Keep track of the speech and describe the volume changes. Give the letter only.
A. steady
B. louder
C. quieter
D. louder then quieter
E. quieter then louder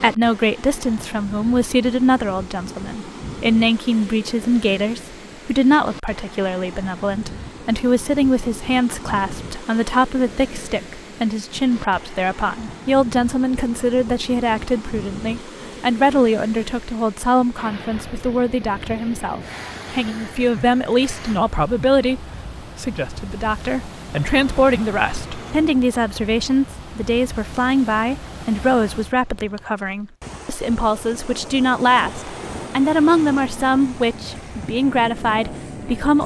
A.